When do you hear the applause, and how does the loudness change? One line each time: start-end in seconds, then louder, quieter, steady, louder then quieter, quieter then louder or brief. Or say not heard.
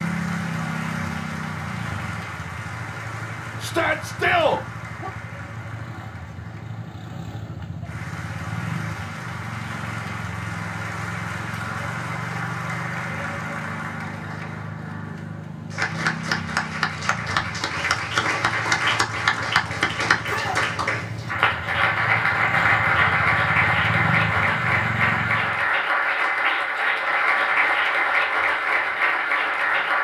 0.0-29.9 louder.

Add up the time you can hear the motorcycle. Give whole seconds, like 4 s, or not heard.
26 s.